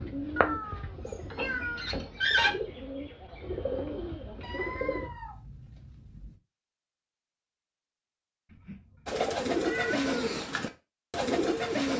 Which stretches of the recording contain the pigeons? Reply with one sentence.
The pigeons can be heard from 0.0 to 5.1 s and from 9.1 to 11.9 s.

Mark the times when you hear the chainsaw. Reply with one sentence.
The chainsaw can't be heard in this clip.